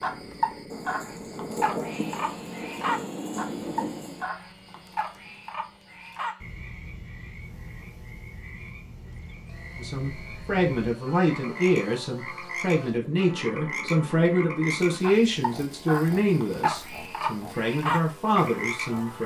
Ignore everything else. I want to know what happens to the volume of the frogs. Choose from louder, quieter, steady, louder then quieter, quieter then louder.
quieter then louder.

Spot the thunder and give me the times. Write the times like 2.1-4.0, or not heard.
0.7-4.2.